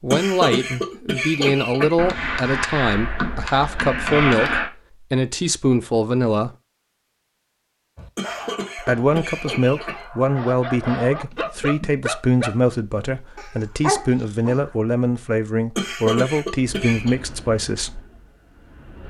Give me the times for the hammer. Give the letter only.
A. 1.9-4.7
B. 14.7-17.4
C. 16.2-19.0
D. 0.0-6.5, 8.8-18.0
A.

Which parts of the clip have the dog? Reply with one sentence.
The dog can be heard from 8.0 to 14.8 s.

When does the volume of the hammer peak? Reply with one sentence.
The volume of the hammer peaks at 4 seconds.